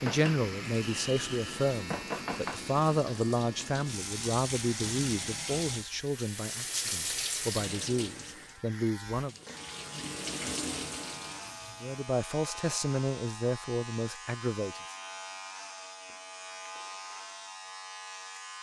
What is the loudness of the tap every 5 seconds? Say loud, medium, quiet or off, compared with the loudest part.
loud, loud, loud, off.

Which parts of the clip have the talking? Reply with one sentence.
The talking can be heard from 0.0 to 9.3 s and from 11.8 to 14.9 s.